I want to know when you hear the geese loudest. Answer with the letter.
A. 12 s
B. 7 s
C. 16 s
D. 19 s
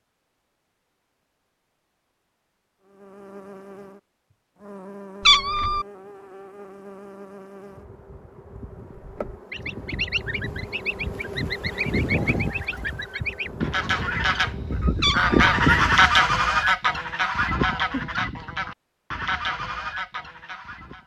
C.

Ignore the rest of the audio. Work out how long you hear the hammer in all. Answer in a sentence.
The hammer can't be heard in this clip.